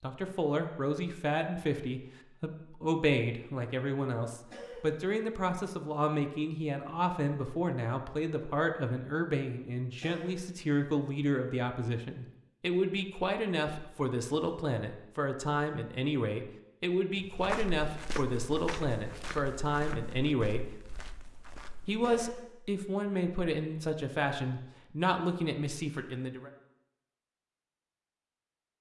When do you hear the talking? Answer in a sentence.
The talking can be heard from 0.0 to 20.7 s and from 21.9 to 26.5 s.